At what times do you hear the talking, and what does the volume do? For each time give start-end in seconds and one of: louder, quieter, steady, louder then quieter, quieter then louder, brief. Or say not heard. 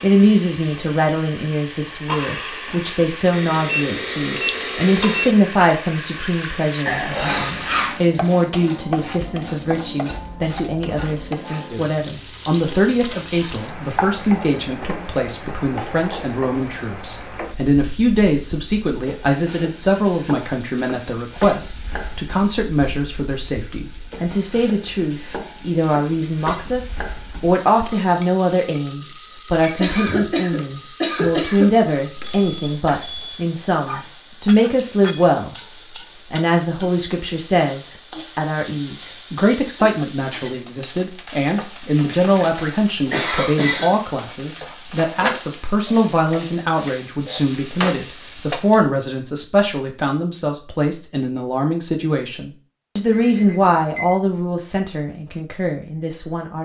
0.0-35.5 steady
36.3-56.5 steady.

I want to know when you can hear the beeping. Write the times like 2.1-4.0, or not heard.
3.3-5.3, 32.1-33.5, 53.1-54.1.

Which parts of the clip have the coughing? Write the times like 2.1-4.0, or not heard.
6.8-8.0, 29.8-31.8, 42.0-44.0.